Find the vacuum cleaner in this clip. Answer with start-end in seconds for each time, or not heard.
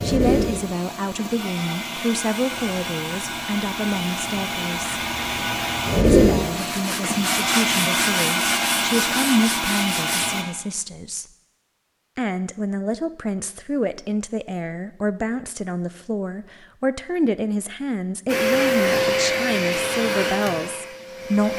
0.0-10.4, 18.2-21.5.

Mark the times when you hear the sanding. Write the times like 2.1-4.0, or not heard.
2.5-10.3.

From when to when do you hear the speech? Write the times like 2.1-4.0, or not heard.
0.0-5.0, 6.0-11.2, 12.2-21.5.